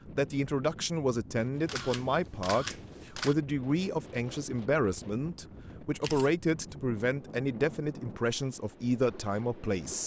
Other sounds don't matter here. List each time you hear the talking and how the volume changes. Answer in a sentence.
You can hear the talking from 0.1 to 10.0 s, at a steady volume.